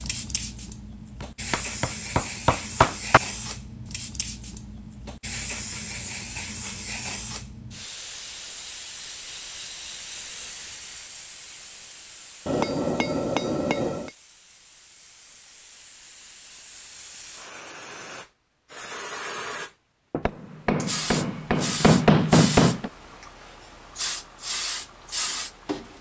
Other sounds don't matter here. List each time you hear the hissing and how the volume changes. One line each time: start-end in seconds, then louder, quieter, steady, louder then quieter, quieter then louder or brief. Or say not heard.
0.0-25.9 quieter then louder.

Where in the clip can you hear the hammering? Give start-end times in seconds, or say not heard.
1.2-3.2, 12.4-14.1, 20.2-22.9.